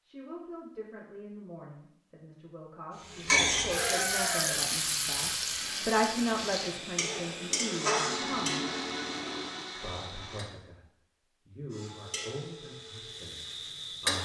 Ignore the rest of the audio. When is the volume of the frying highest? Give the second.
4 s.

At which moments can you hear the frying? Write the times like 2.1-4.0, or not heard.
3.0-10.4, 11.7-14.1.